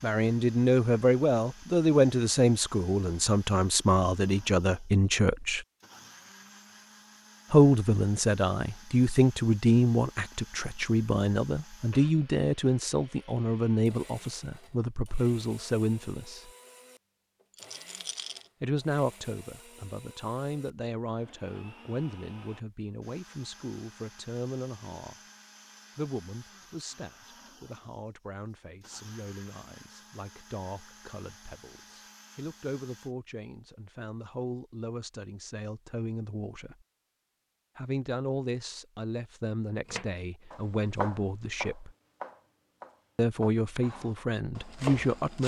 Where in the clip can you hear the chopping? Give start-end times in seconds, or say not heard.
39.9-45.4.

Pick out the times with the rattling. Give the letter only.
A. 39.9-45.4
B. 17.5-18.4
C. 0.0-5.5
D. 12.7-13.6
B.